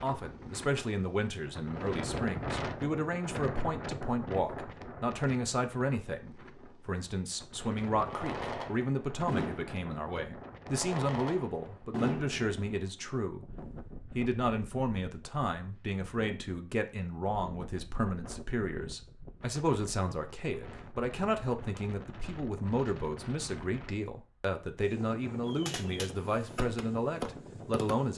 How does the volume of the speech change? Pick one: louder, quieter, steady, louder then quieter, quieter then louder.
steady.